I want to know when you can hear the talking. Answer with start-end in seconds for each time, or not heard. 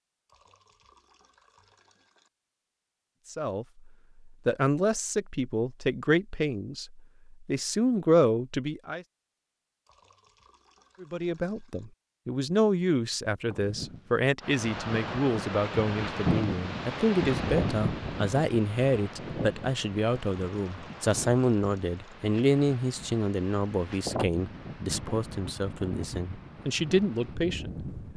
3.2-9.1, 11.0-27.9.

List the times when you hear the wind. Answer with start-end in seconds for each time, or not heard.
13.4-28.1.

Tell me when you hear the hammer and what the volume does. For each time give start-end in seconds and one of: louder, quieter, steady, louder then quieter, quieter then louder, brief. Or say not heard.
not heard.